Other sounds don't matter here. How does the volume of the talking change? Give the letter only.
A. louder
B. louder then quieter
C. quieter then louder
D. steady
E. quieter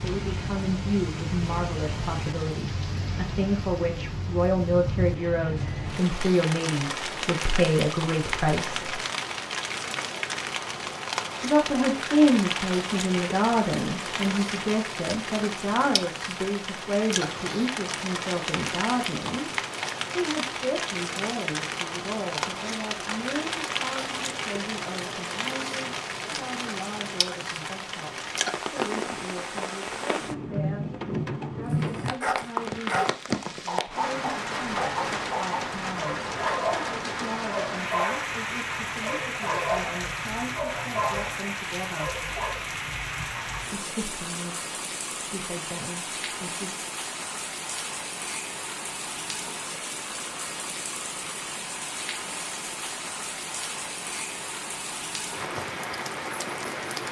E.